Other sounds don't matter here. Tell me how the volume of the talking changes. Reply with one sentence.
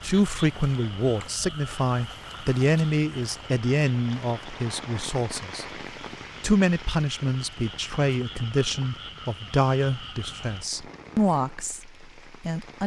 The volume of the talking stays about the same.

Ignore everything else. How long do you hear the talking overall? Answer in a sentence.
The talking can be heard for 12 seconds in total.